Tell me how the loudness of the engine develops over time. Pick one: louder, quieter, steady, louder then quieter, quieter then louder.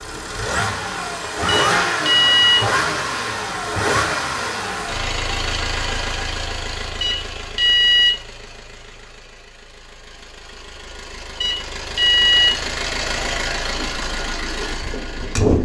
quieter then louder.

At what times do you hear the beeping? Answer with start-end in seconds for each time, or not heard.
1.4-2.6, 7.0-8.2, 11.4-12.6.